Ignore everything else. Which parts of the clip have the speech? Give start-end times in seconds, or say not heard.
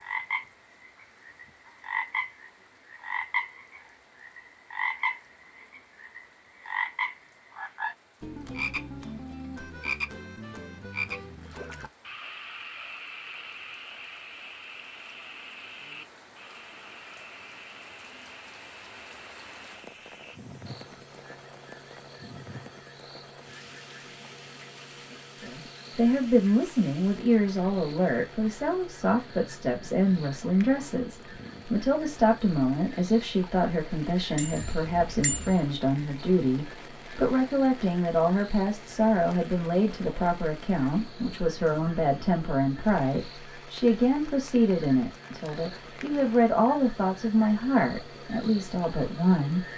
25.4-49.6.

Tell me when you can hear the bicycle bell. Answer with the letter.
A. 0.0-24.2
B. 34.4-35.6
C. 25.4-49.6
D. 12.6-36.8
B.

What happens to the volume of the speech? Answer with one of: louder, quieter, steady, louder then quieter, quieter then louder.
steady.